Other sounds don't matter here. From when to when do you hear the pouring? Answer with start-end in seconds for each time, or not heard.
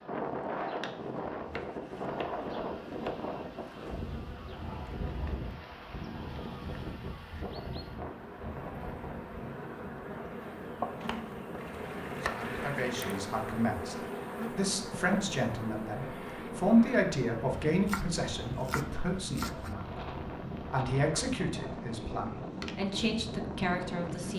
11.6-13.3.